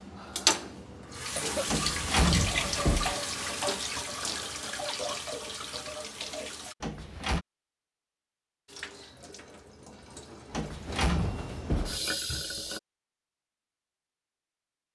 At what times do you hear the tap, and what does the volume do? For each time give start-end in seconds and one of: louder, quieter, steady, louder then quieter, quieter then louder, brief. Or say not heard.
0.0-6.8 quieter
8.7-12.8 louder.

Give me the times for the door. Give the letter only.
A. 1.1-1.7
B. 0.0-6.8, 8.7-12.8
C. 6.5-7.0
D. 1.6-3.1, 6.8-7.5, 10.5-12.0
D.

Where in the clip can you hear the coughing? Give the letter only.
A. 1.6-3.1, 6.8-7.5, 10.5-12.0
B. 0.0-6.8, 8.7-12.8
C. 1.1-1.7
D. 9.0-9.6
C.